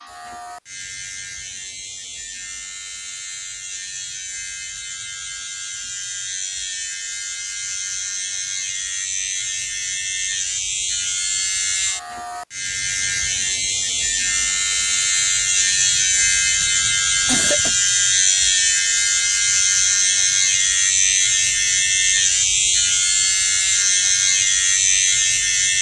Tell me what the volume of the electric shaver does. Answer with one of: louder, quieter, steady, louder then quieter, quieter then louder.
louder.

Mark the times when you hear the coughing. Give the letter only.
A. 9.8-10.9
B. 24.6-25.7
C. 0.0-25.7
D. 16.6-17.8
D.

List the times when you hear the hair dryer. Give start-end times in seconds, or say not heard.
not heard.